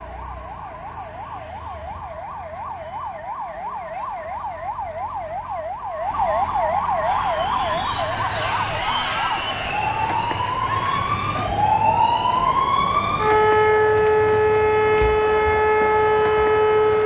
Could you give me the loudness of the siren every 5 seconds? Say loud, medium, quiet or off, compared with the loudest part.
quiet, medium, loud, loud.